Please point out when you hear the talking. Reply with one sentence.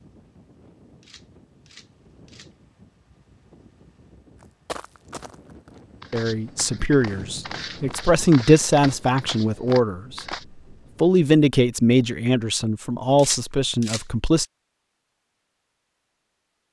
You can hear the talking from 6.1 to 10.2 s and from 11.0 to 14.4 s.